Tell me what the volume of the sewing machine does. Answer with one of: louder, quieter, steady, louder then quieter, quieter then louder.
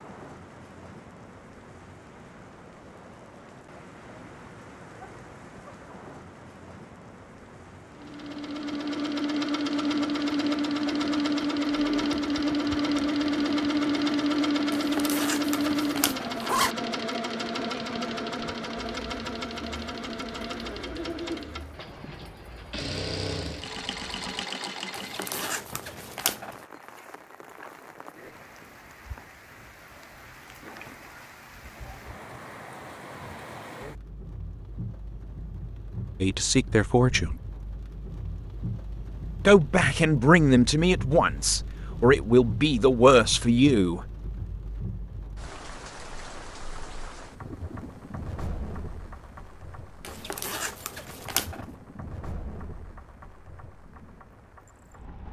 quieter.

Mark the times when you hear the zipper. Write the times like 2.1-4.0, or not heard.
14.7-16.8, 24.9-26.6, 50.0-51.6.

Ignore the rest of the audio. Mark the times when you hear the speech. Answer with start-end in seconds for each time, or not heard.
36.2-37.4, 39.5-44.0.